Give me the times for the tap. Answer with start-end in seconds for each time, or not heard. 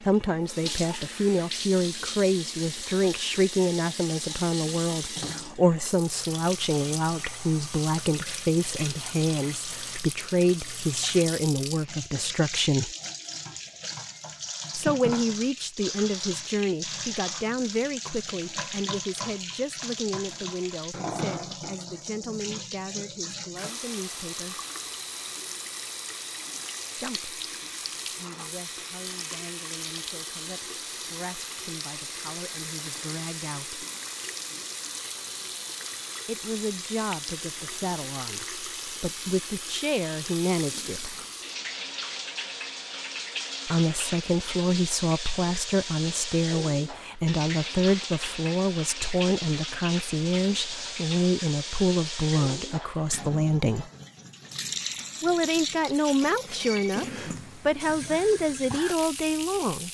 0.0-59.8.